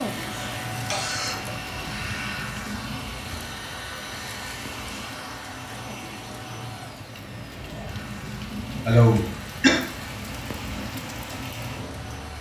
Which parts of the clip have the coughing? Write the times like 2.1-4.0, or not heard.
0.3-1.4, 8.8-9.8.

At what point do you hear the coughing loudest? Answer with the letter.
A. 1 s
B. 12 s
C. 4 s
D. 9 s
D.